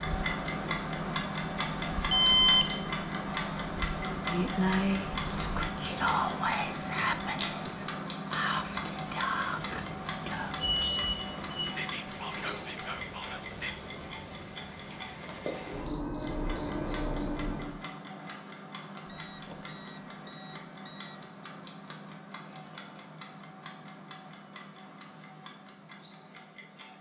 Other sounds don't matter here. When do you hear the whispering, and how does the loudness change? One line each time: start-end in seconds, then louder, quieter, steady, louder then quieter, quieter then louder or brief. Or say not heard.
4.3-13.8 quieter.